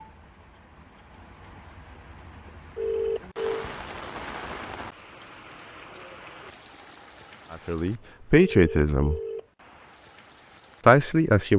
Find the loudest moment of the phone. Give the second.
3 s.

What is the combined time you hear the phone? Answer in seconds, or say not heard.
2 s.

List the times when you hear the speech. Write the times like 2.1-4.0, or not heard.
7.5-9.2, 10.8-11.5.